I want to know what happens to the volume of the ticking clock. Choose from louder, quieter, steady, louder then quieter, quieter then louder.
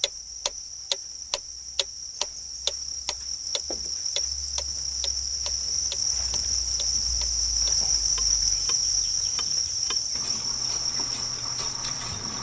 quieter.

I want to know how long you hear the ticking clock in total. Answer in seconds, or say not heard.
12 s.